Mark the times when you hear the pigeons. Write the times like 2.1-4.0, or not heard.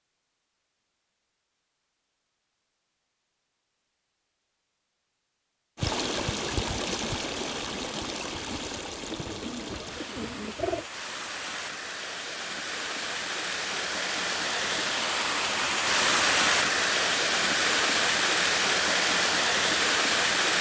9.1-10.8.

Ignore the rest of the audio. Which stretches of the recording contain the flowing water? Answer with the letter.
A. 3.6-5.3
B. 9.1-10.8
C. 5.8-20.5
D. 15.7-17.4
C.